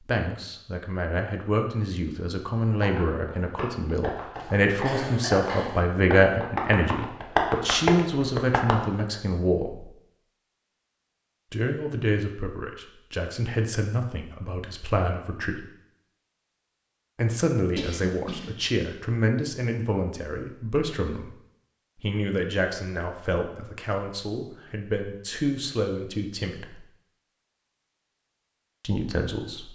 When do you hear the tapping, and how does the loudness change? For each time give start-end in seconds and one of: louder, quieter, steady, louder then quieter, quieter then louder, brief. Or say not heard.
2.6-9.0 louder.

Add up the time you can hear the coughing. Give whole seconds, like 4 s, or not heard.
3 s.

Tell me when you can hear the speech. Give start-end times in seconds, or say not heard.
0.0-9.9, 11.5-15.7, 17.1-21.3, 22.0-26.9, 28.8-29.7.